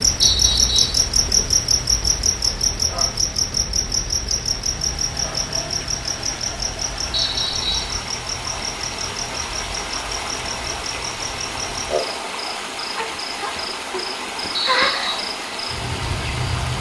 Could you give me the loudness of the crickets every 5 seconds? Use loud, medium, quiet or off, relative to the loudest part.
loud, medium, medium, medium.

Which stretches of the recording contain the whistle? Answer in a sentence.
You can hear the whistle from 0.2 to 1.1 s, from 7.1 to 8.0 s and from 14.5 to 15.2 s.